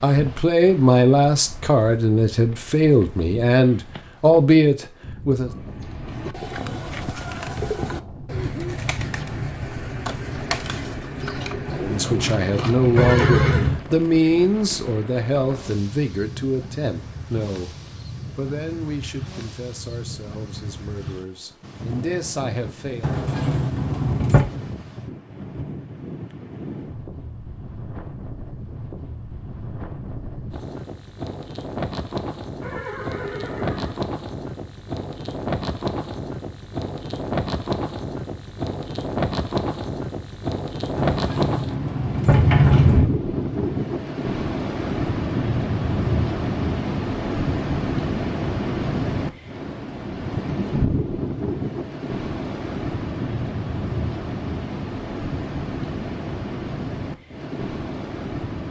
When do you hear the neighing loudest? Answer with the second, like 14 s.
13 s.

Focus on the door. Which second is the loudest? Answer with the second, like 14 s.
43 s.